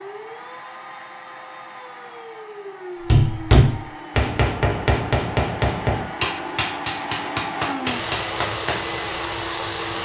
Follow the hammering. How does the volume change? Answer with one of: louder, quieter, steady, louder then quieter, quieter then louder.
quieter.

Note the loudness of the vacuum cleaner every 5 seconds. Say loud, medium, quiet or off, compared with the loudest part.
medium, loud.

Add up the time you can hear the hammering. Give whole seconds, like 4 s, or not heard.
6 s.